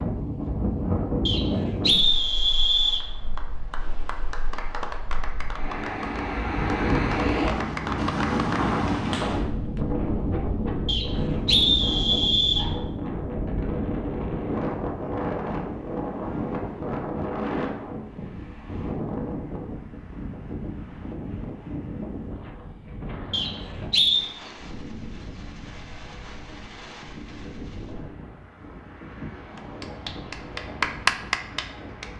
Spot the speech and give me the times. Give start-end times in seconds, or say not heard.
not heard.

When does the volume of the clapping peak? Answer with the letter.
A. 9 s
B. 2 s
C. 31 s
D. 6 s
C.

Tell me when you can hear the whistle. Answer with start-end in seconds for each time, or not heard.
1.2-3.0, 10.8-12.7, 23.3-24.2.